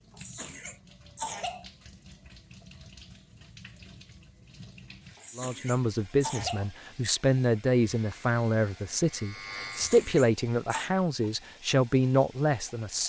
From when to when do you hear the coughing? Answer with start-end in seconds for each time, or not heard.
0.1-1.6, 5.2-6.7, 9.7-10.9.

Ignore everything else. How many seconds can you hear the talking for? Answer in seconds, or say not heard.
8 s.